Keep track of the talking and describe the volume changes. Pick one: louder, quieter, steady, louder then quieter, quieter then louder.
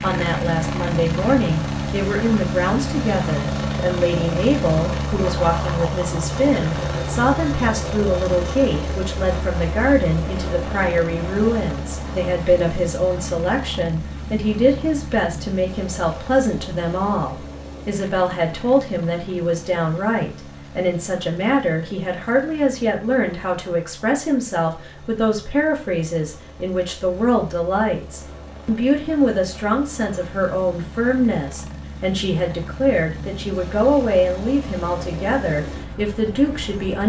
steady.